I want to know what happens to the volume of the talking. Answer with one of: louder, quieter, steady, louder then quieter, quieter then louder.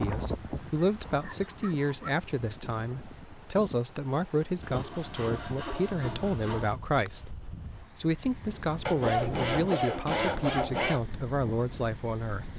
steady.